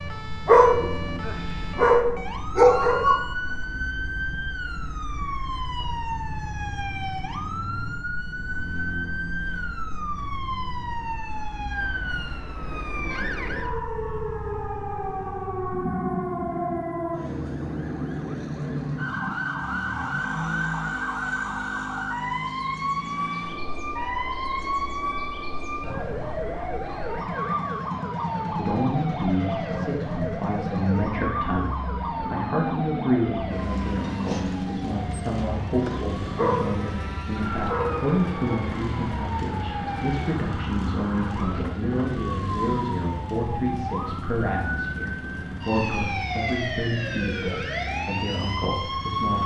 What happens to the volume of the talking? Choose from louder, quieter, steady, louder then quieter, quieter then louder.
steady.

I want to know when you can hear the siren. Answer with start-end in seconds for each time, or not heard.
0.0-49.4.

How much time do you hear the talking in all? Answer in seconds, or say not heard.
21 s.